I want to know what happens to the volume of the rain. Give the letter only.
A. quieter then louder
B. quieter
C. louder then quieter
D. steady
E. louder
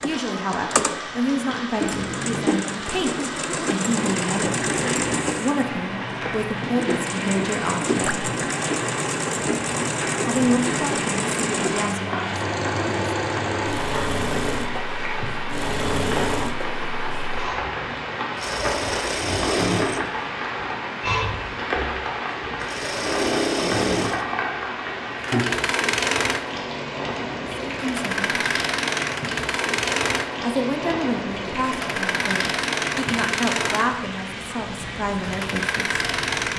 D.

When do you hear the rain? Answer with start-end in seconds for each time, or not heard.
0.0-36.5.